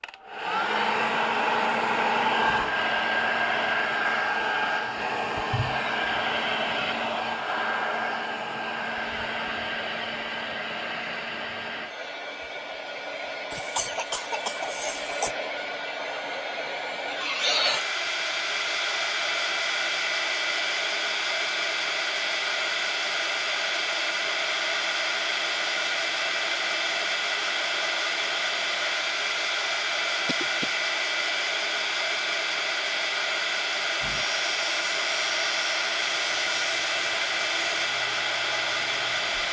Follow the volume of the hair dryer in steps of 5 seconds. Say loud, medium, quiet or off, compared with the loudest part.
loud, loud, medium, loud, loud, loud, loud, loud.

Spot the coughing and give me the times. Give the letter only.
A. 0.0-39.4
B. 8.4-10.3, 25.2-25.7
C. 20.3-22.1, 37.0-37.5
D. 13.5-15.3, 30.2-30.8
D.